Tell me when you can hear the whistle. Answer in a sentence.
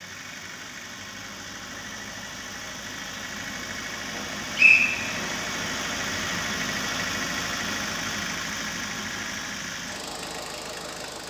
You can hear the whistle from 4.2 to 5.3 s.